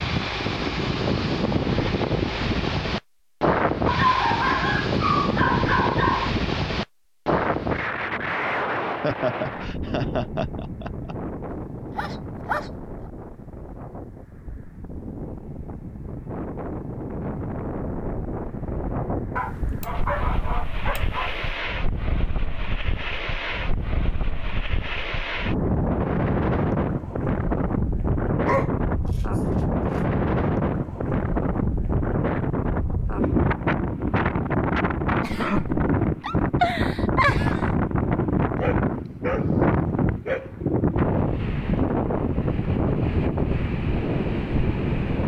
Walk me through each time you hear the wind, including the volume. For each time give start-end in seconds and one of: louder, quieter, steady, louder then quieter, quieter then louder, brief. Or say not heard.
0.0-45.2 quieter then louder.